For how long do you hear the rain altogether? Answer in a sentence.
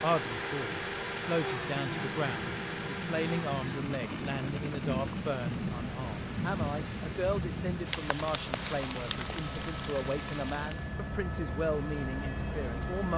You can hear the rain for 11 seconds altogether.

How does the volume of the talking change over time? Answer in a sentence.
The loudness of the talking stays about the same.